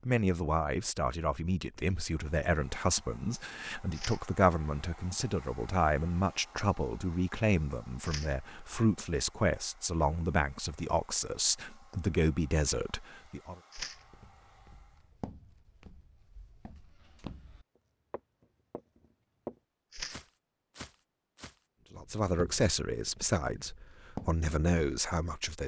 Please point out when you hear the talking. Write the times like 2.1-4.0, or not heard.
0.1-13.6, 21.9-25.6.